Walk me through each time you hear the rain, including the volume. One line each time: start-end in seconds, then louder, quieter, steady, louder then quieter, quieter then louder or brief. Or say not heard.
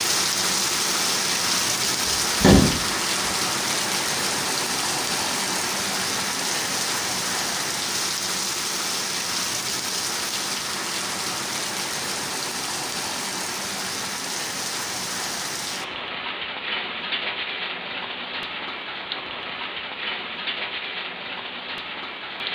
0.0-22.5 quieter.